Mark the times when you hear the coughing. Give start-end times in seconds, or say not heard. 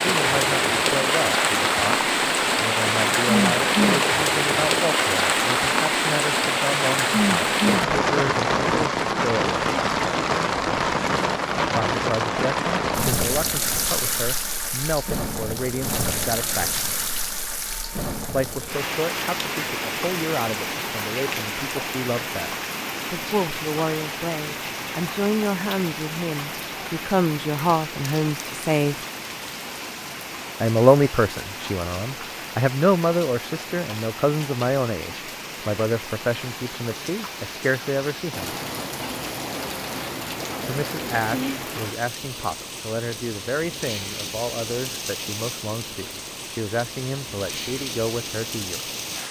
not heard.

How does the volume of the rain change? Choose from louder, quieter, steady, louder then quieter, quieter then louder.
quieter.